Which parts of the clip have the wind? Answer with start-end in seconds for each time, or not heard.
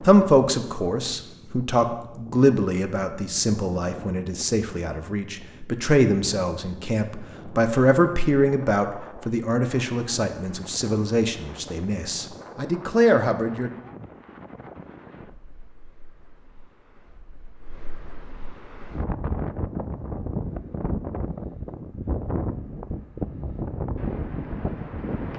0.0-25.3.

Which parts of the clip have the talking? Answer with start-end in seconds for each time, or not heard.
0.0-13.7.